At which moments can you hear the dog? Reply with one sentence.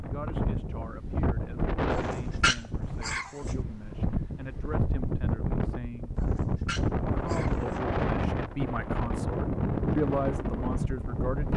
The dog can be heard from 1.9 to 3.5 s and from 6.2 to 7.8 s.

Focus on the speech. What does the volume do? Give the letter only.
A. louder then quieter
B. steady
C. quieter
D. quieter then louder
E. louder
E.